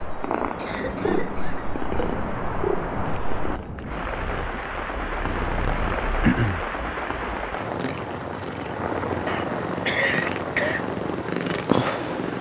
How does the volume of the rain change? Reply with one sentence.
The loudness of the rain stays about the same.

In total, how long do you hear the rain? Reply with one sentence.
The rain can be heard for 12 seconds in total.